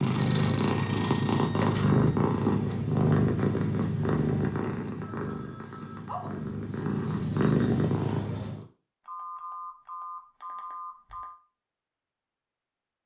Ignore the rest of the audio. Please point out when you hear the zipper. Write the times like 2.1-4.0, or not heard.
not heard.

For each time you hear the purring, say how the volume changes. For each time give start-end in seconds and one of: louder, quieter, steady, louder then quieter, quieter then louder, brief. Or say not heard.
0.0-8.7 quieter then louder.